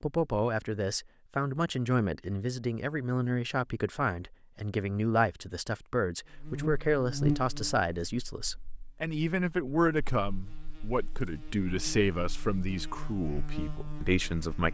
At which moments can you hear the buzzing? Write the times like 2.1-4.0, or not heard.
6.3-14.6.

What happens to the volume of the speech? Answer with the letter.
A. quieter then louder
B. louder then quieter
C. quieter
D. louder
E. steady
E.